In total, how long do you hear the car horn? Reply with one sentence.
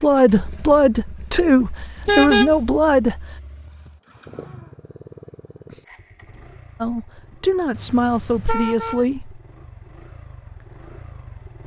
You can hear the car horn for 2 seconds altogether.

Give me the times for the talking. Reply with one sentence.
The talking can be heard from 0.0 to 3.4 s and from 6.8 to 9.4 s.